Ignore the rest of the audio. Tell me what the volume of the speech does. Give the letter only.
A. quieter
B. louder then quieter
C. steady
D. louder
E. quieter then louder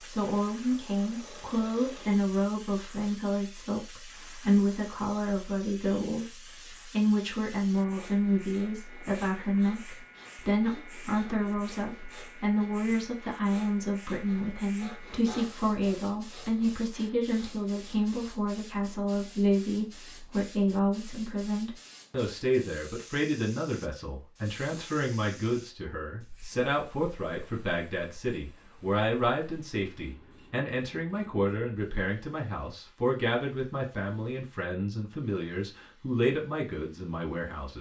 C.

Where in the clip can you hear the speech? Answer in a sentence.
You can hear the speech from 0.0 to 37.7 s.